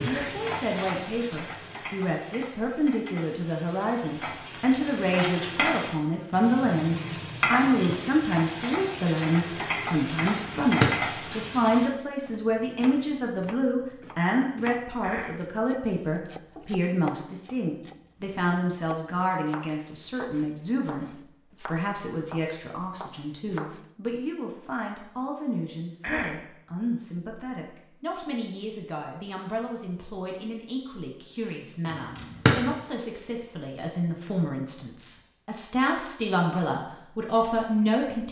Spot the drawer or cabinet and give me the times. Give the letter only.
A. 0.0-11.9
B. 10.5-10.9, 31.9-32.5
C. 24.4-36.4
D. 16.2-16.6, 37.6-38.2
B.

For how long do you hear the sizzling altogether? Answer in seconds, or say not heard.
12 s.